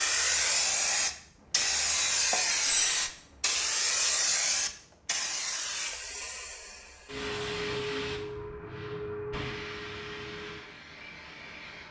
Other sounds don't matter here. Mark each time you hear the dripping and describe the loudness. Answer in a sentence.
The dripping can't be heard in this clip.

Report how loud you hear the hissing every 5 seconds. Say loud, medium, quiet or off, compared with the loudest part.
loud, medium, quiet.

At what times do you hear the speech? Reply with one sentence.
The speech can't be heard in this clip.